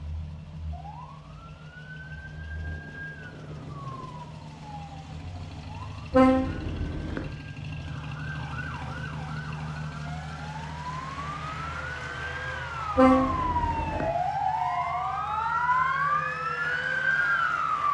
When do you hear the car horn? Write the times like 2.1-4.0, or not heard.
6.1-7.3, 12.9-14.1.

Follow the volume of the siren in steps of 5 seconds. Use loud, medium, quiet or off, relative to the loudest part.
quiet, quiet, medium, loud.